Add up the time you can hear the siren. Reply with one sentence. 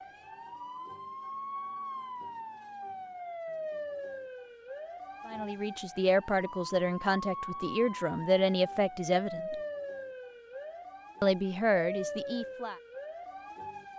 You can hear the siren for 14 seconds altogether.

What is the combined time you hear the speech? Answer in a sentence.
The speech can be heard for 6 seconds in total.